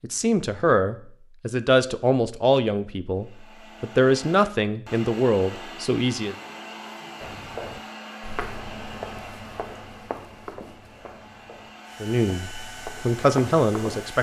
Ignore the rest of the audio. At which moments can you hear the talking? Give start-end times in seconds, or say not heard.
0.0-6.3, 12.0-14.1.